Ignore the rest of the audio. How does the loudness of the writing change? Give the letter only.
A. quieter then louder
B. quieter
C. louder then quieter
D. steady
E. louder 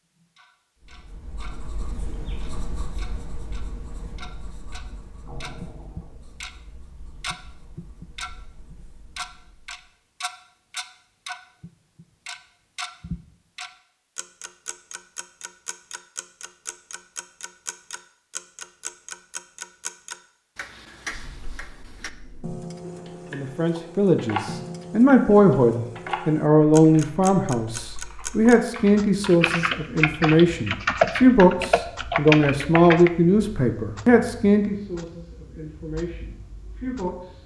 B.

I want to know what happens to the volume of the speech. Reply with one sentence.
The volume of the speech goes down.